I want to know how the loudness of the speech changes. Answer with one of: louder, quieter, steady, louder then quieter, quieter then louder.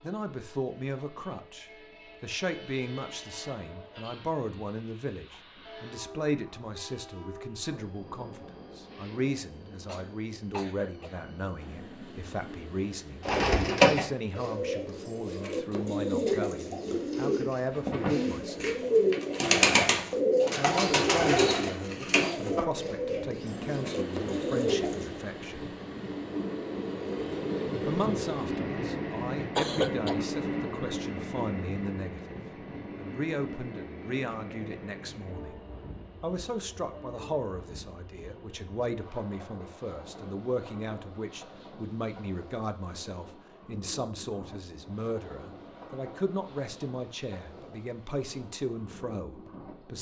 steady.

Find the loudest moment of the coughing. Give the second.
30 s.